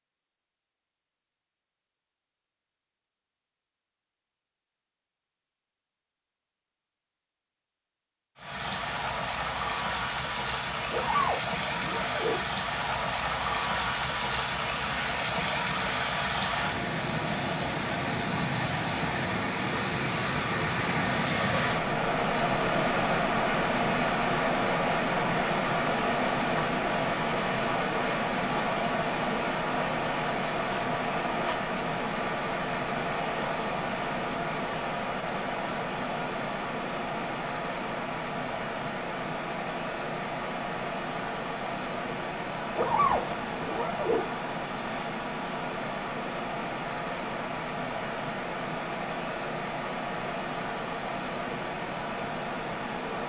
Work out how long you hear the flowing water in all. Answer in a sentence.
You can hear the flowing water for 45 seconds altogether.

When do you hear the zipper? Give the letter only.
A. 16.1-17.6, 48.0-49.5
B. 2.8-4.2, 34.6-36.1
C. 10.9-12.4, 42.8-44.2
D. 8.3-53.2
C.